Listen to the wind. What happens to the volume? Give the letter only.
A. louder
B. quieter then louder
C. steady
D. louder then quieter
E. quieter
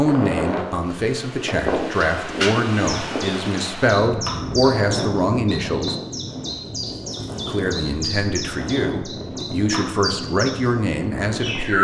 E.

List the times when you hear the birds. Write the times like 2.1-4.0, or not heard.
2.9-11.7.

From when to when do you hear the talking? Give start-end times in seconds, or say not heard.
0.0-6.0, 7.5-11.7.